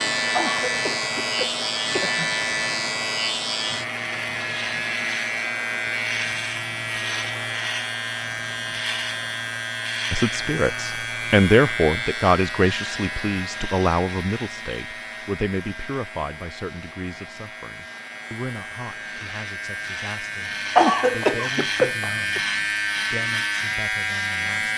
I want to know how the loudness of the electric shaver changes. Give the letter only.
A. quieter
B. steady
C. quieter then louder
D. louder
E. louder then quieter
C.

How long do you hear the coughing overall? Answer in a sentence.
The coughing can be heard for 4 seconds in total.